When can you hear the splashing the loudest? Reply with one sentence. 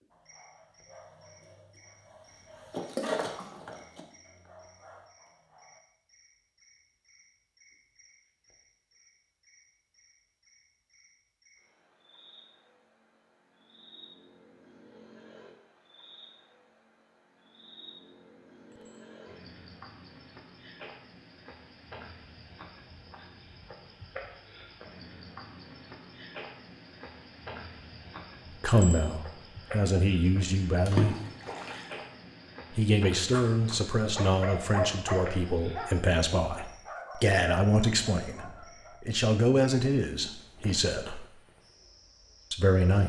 The volume of the splashing peaks at 31 seconds.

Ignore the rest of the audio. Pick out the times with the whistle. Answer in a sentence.
You can't hear the whistle here.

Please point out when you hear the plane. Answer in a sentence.
The plane can't be heard in this clip.